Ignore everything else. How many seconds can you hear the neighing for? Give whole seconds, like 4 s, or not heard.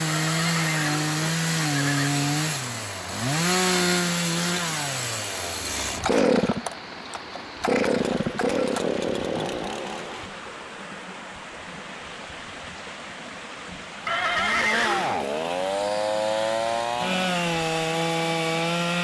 3 s.